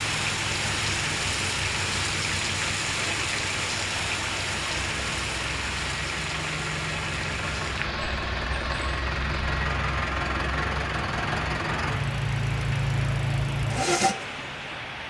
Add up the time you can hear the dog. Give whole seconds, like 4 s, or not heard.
not heard.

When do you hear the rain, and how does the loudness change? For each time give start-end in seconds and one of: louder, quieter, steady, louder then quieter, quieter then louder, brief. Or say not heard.
0.0-15.0 quieter.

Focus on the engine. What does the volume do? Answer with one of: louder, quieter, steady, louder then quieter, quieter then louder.
louder.